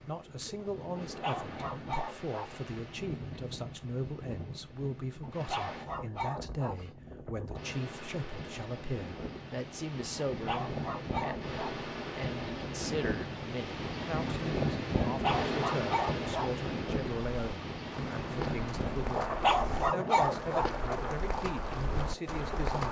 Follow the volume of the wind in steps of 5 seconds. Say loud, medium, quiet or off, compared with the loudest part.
medium, medium, loud, loud, medium.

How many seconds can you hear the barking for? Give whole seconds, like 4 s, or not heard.
8 s.